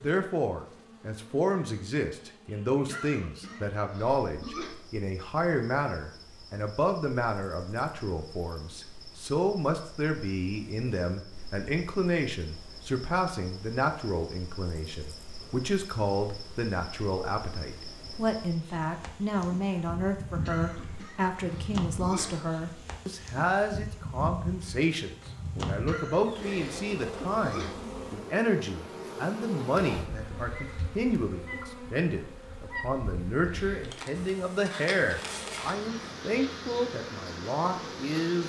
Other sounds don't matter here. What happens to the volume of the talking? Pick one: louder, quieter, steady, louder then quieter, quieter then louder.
steady.